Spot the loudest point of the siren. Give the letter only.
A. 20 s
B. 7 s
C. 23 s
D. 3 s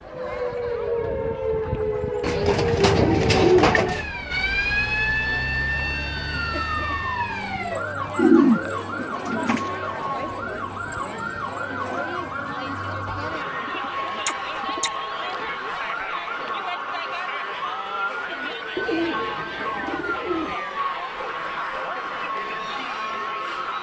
D.